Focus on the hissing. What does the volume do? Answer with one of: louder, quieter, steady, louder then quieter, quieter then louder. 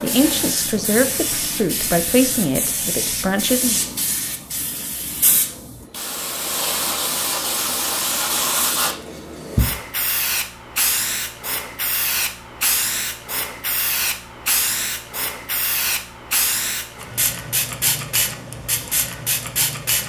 steady.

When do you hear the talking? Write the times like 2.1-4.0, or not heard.
0.0-3.8.